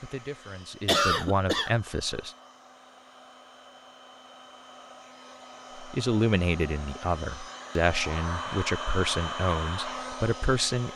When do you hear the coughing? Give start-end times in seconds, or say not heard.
0.8-1.7.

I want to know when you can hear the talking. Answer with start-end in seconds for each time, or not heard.
0.0-2.4, 5.8-10.9.